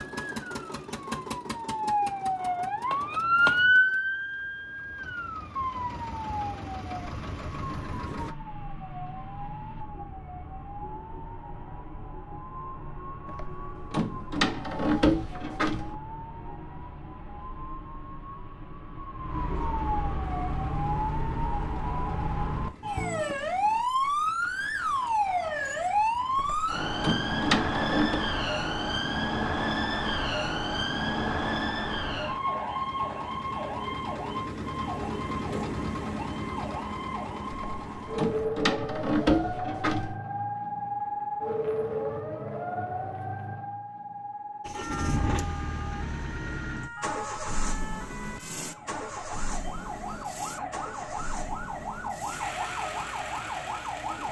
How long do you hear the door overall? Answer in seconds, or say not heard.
7 s.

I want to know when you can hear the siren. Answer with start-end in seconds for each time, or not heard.
0.0-54.2.